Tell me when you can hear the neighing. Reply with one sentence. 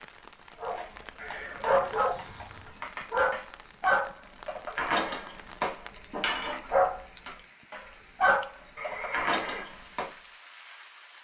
You can hear the neighing from 1.1 to 2.9 s and from 8.8 to 9.7 s.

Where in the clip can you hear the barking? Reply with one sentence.
You can hear the barking from 0.6 to 10.1 s.